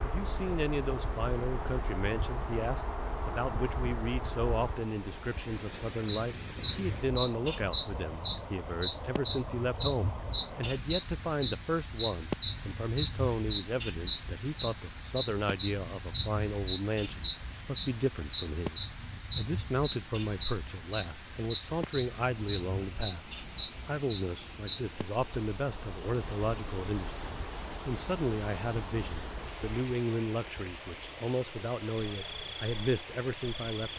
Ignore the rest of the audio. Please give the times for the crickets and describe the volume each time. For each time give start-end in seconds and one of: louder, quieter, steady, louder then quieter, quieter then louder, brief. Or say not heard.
0.0-33.9 louder then quieter.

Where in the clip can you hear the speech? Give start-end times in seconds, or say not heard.
0.0-33.9.